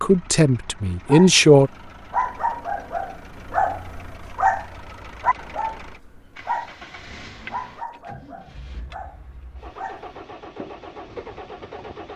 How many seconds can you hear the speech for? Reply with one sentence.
The speech can be heard for 2 seconds in total.